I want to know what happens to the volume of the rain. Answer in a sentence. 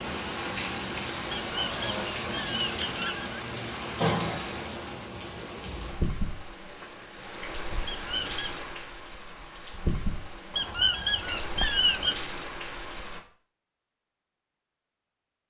The volume of the rain goes down.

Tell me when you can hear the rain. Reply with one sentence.
You can hear the rain from 0.0 to 13.2 s.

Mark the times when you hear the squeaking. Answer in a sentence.
You can hear the squeaking from 1.4 to 3.4 s, from 7.8 to 8.6 s and from 10.6 to 12.2 s.